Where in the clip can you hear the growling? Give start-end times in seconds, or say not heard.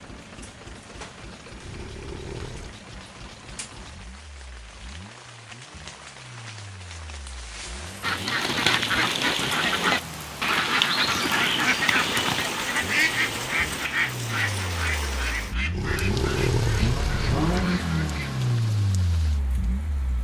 1.6-2.8, 15.7-17.5.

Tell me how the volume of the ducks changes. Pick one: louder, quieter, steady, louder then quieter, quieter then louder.
quieter.